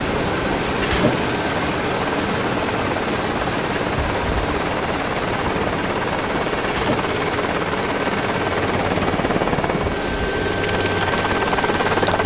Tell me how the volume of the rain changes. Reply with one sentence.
The volume of the rain goes down.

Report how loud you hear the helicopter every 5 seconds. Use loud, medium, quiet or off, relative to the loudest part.
medium, loud, loud.